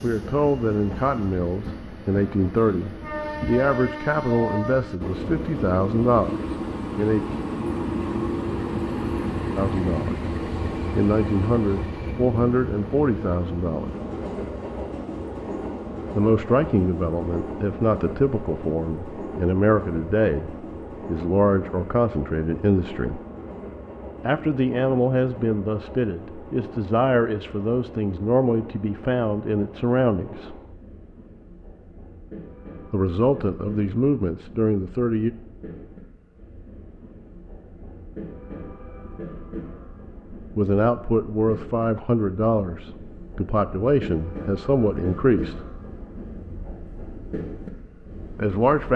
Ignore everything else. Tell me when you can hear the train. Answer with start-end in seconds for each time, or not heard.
0.0-48.9.